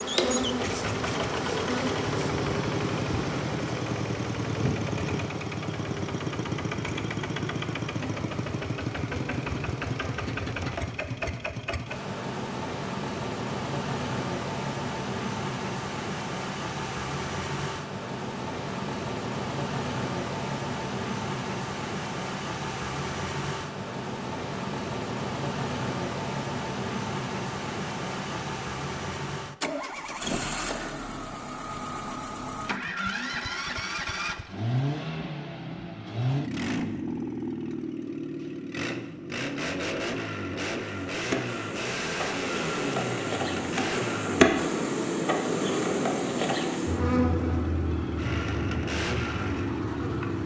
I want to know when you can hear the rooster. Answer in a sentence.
You can't hear the rooster here.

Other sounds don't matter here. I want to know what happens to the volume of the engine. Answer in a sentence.
The loudness of the engine stays about the same.